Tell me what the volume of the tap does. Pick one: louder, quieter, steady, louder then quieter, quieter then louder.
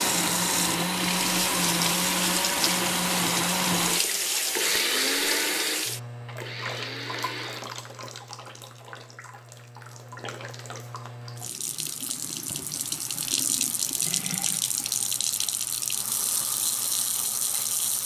quieter then louder.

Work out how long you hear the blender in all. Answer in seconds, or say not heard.
8 s.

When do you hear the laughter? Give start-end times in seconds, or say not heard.
not heard.